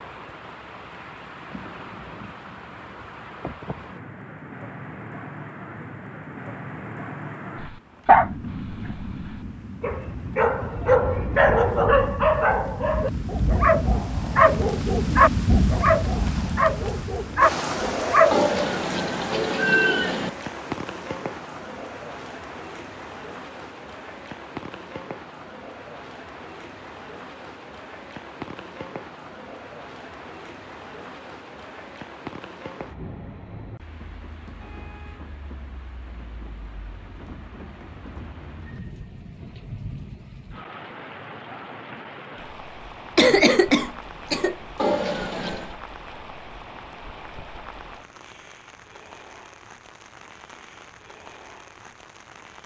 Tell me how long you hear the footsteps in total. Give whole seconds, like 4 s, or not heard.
not heard.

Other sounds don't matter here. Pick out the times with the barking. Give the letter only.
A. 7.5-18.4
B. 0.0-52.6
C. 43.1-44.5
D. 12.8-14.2
A.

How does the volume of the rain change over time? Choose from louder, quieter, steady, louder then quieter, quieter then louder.
louder then quieter.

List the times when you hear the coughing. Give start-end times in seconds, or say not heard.
43.1-44.5.